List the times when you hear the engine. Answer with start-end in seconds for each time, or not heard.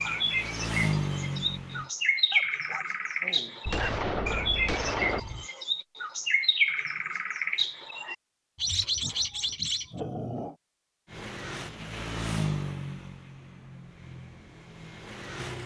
0.0-1.9, 11.1-15.6.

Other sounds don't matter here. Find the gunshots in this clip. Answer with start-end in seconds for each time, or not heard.
3.6-5.5.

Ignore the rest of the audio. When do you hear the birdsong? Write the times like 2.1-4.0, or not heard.
0.0-9.8.